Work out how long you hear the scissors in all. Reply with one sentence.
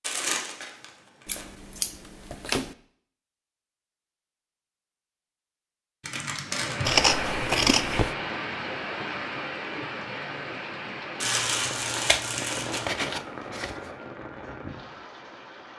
The scissors can be heard for 5 seconds in total.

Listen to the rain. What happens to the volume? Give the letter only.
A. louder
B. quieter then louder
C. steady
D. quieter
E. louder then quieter
D.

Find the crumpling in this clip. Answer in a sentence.
You can hear the crumpling from 0.0 to 1.4 s, from 6.0 to 7.2 s and from 11.2 to 12.9 s.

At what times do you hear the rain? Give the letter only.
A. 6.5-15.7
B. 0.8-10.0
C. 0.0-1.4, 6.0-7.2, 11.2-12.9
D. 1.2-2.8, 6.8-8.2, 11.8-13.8
A.